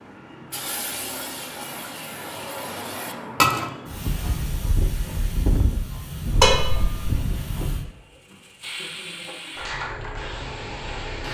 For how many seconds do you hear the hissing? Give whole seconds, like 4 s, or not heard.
11 s.